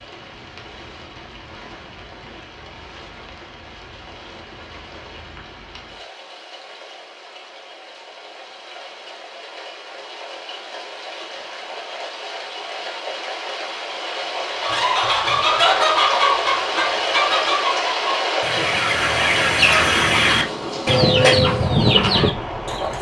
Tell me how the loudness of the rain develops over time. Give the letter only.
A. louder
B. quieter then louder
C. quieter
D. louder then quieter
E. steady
A.